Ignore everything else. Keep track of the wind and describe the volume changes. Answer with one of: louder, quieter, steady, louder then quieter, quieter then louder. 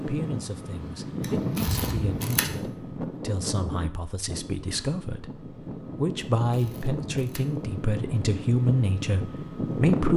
quieter then louder.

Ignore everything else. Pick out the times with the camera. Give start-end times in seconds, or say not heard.
1.2-2.5, 6.5-7.7.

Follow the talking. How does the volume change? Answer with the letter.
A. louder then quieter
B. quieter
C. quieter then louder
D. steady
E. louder
E.